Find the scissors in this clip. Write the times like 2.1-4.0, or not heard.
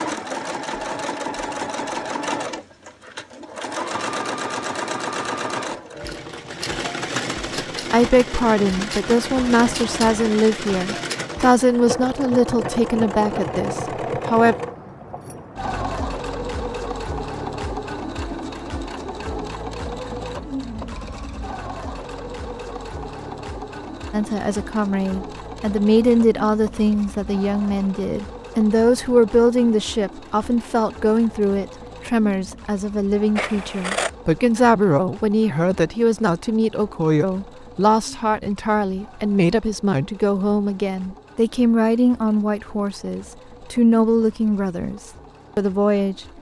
9.3-10.2, 33.4-34.1.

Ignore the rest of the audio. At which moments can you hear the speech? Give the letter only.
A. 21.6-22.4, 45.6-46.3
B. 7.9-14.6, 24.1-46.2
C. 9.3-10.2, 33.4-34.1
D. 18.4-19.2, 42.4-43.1
B.